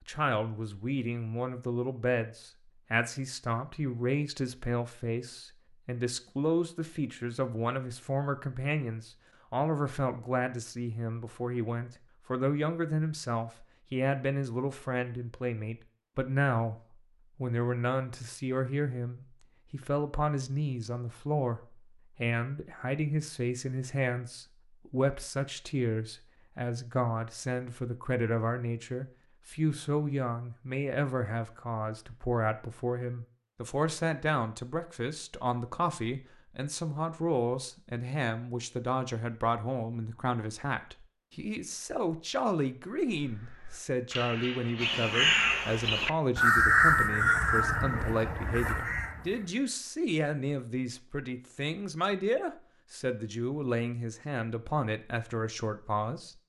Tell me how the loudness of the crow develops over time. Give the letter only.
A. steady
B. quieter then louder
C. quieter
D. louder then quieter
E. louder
D.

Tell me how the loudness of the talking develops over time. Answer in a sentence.
The loudness of the talking stays about the same.